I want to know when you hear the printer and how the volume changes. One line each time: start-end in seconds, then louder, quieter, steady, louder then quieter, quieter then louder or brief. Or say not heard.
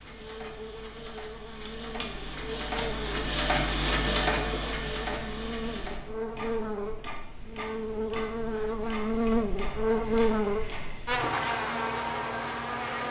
0.0-13.0 louder then quieter.